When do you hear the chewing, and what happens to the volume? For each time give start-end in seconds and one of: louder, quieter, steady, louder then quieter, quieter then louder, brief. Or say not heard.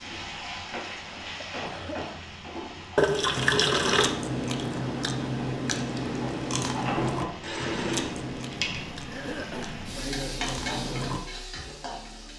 3.4-11.2 quieter.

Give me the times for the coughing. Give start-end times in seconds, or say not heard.
0.7-2.1, 9.0-9.8.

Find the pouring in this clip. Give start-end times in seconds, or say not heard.
3.0-4.2, 7.4-8.2.